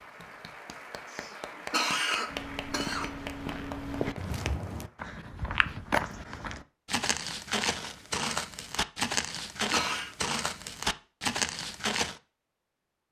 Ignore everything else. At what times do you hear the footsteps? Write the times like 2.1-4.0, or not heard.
2.2-12.2.